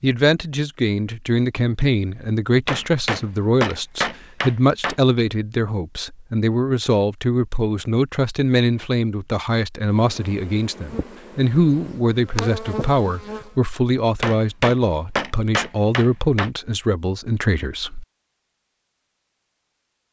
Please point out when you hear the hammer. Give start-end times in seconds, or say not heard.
2.6-5.0, 14.2-16.5.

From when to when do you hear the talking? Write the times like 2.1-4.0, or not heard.
0.0-18.1.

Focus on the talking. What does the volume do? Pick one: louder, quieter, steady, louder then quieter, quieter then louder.
steady.